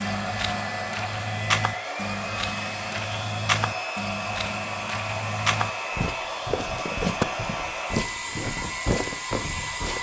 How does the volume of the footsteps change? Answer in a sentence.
The loudness of the footsteps stays about the same.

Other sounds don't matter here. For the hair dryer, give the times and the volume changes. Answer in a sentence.
You can hear the hair dryer from 0.0 to 9.9 s, at a steady volume.